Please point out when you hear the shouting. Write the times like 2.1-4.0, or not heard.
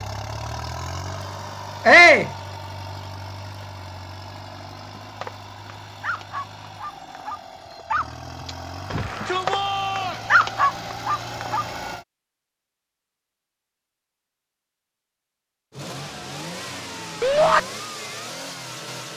1.9-2.3, 8.9-10.2, 17.2-17.6.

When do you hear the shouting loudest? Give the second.
2 s.